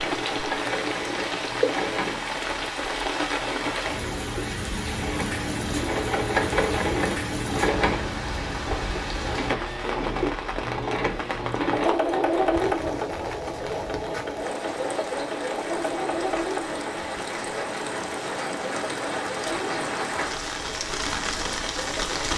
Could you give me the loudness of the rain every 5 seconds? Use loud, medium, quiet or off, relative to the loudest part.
loud, loud, medium, loud, loud.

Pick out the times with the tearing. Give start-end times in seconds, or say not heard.
not heard.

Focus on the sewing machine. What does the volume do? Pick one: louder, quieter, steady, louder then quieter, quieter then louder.
louder then quieter.